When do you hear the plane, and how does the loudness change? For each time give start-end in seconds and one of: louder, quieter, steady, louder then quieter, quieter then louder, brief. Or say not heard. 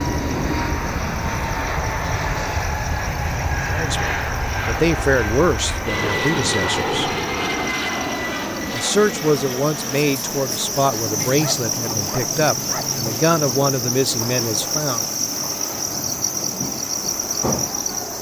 0.0-18.1 quieter.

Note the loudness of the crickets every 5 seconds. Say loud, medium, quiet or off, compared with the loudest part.
quiet, medium, loud, loud.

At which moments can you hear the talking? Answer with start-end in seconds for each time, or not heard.
3.7-7.2, 8.7-15.1.